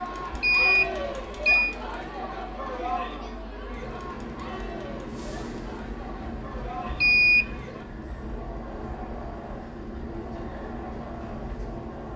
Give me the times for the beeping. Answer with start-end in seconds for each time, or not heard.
0.3-1.8, 6.9-7.5.